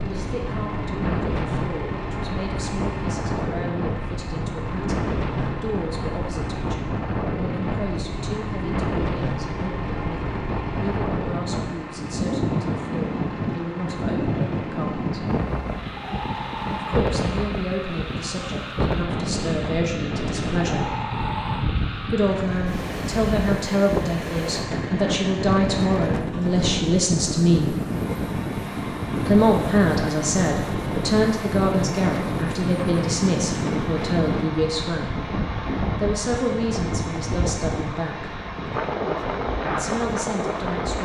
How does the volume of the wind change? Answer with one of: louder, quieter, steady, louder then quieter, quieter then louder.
steady.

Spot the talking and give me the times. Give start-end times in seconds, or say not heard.
0.0-15.2, 16.8-20.9, 22.1-27.8, 29.2-35.2, 35.9-38.4, 39.6-41.0.